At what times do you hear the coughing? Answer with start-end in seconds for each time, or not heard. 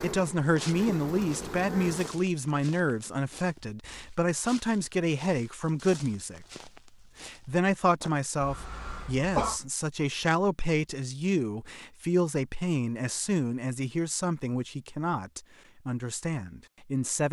8.4-9.6.